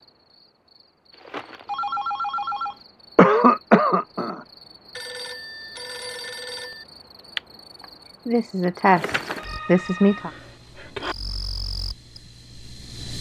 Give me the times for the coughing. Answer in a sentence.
You can hear the coughing from 3.1 to 4.4 s and from 8.2 to 10.3 s.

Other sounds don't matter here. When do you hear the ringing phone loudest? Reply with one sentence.
The loudest moment of the ringing phone is at 2 seconds.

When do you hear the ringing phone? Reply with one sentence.
You can hear the ringing phone from 1.6 to 2.8 s, from 5.0 to 6.8 s and from 9.3 to 11.2 s.